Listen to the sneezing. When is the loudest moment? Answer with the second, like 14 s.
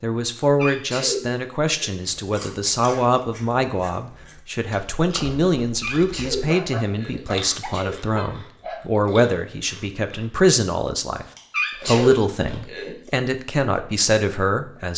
12 s.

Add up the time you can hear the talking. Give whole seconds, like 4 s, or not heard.
14 s.